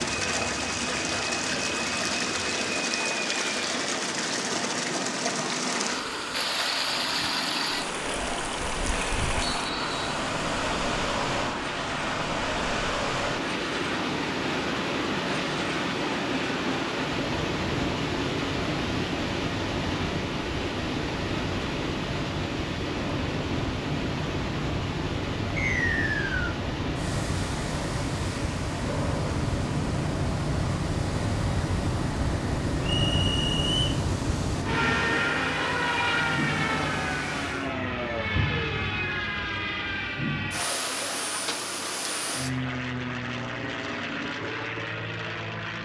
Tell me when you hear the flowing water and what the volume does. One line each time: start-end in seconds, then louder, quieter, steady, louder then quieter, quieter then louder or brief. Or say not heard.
0.0-37.8 quieter.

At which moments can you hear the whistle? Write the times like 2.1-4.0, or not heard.
9.4-10.0, 25.6-26.6, 32.8-34.0.